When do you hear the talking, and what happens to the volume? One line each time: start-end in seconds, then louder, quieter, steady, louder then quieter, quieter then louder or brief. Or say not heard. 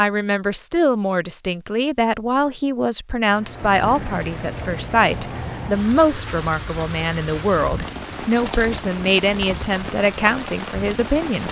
0.0-11.4 steady.